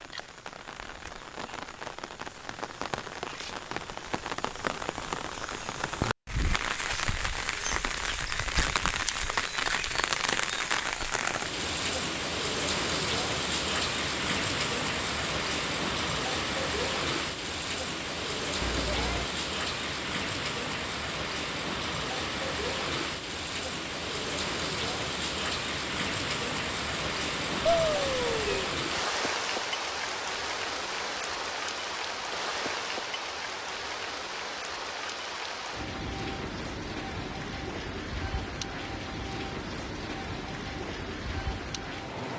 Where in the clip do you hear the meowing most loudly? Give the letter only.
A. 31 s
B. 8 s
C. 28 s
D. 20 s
C.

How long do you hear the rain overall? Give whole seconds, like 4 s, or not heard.
42 s.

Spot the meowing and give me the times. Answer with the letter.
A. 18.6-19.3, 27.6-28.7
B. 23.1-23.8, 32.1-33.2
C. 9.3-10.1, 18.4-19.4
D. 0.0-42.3
A.